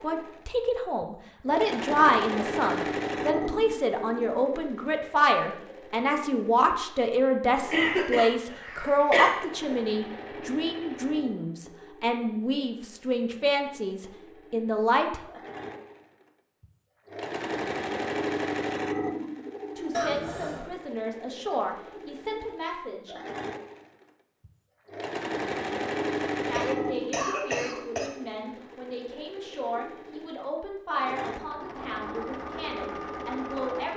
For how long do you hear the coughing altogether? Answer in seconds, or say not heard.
4 s.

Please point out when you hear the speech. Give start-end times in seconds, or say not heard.
0.0-15.2, 19.8-23.1, 26.4-33.9.